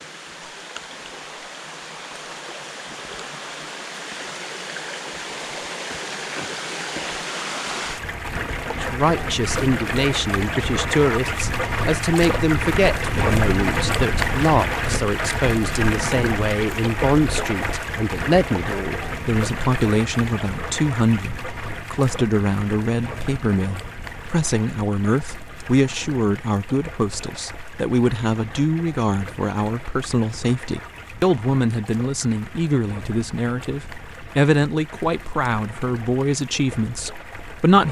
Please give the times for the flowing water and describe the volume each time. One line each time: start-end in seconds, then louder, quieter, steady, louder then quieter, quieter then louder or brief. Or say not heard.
0.0-37.8 louder then quieter.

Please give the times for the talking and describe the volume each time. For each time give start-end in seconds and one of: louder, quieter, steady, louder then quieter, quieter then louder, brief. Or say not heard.
8.8-37.8 steady.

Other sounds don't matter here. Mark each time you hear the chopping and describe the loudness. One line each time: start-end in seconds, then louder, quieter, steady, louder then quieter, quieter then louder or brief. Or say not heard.
not heard.